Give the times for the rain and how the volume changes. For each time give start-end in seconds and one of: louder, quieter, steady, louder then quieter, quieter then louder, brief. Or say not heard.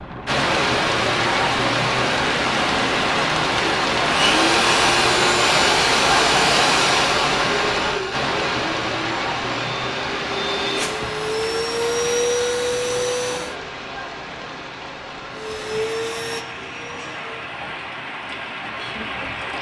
0.0-19.5 quieter.